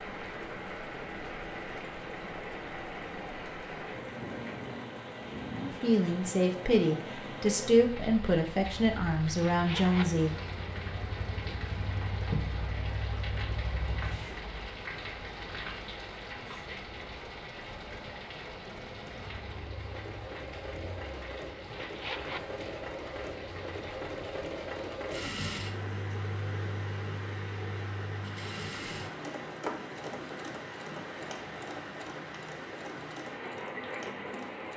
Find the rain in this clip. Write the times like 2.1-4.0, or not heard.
0.0-34.7.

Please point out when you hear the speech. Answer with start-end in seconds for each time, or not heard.
5.6-10.3.